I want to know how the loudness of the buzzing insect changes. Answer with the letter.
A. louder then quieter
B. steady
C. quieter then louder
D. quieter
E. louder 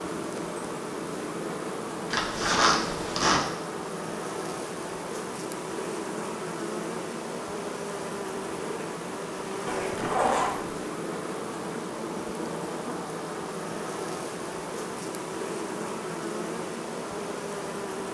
B.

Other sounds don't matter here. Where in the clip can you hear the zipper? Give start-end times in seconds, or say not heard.
2.1-3.5, 9.7-10.8.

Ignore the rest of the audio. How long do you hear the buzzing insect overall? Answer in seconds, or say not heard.
18 s.